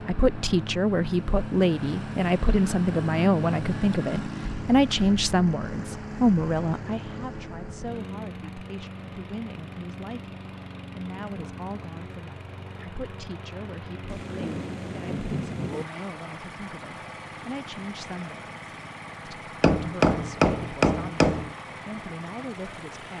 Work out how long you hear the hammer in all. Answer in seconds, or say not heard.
2 s.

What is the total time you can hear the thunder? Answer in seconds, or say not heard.
2 s.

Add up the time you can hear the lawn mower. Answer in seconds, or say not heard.
23 s.